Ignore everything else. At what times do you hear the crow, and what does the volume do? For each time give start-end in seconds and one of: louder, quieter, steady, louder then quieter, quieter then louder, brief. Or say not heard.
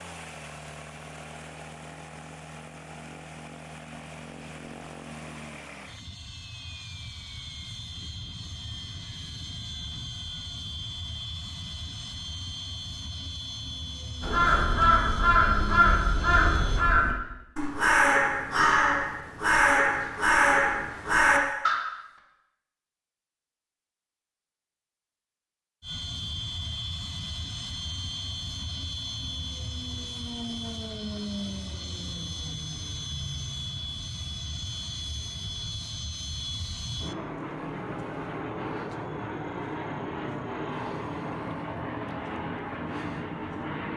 14.2-21.8 steady.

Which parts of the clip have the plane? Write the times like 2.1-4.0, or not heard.
0.0-16.9, 25.8-43.9.